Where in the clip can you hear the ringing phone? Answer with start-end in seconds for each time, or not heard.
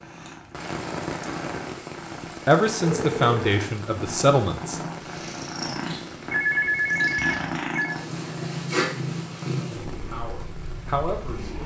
2.8-3.5, 6.3-8.0.